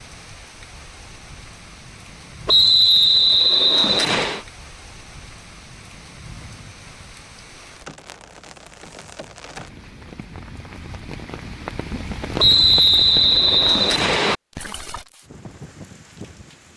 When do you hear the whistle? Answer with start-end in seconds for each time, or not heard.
2.5-4.4, 12.3-14.3.